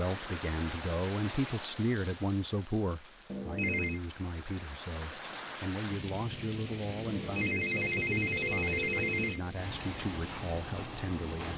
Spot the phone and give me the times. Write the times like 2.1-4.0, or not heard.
3.2-4.0, 7.0-9.4.